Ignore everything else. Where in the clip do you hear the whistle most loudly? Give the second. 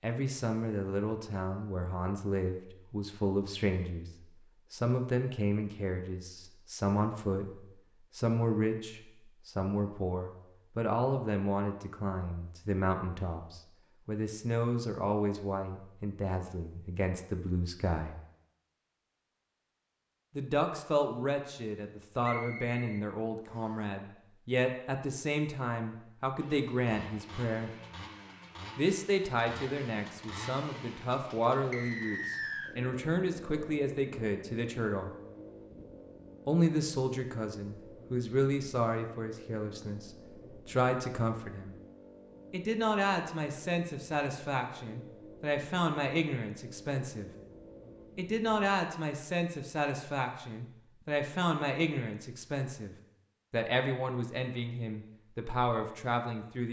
32 s.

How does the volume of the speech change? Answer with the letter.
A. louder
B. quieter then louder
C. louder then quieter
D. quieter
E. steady
E.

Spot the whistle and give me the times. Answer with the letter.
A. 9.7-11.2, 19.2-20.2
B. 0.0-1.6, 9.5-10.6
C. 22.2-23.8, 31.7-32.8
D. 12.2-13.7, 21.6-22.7
C.